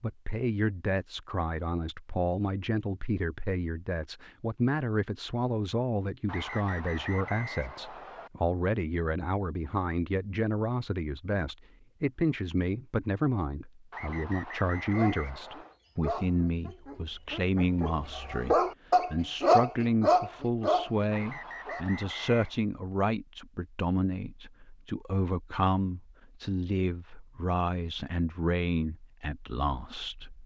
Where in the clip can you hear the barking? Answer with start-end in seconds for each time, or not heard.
14.8-21.9.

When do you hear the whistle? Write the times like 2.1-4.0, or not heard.
6.2-8.3, 13.9-15.8, 21.1-22.6.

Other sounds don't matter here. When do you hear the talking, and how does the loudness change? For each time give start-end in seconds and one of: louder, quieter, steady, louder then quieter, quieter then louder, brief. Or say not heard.
0.0-30.4 steady.